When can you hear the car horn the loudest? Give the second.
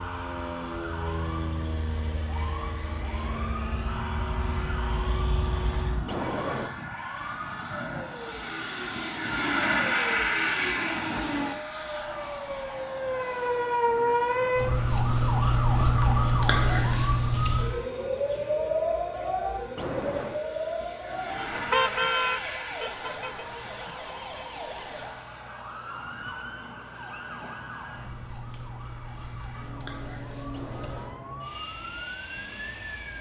22 s.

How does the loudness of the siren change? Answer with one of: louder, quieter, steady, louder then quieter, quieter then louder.
louder then quieter.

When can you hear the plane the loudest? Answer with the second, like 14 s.
10 s.